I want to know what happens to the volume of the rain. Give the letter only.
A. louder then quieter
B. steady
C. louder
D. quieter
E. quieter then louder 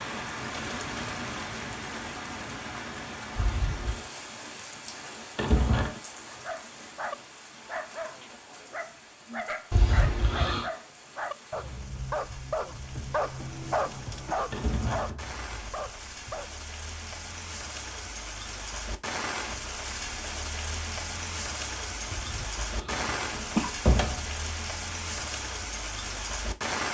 E.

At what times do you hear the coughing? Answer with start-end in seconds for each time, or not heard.
3.4-4.1, 9.7-10.7, 22.1-23.7.